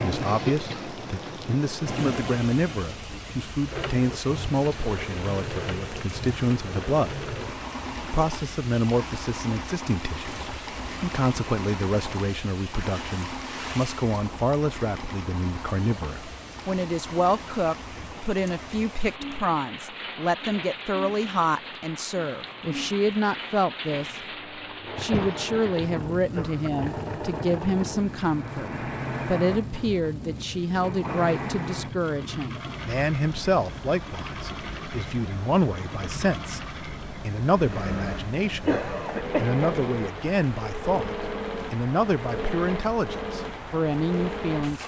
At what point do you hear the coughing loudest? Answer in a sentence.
The loudest moment of the coughing is at 39 seconds.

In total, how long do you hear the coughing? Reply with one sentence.
The coughing can be heard for 4 seconds in total.